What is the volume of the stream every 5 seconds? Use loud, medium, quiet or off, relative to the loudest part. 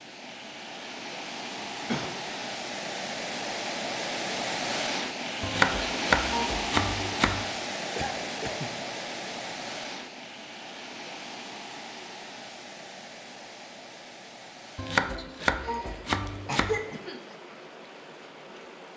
loud, loud, medium, quiet.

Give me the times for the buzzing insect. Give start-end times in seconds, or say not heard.
not heard.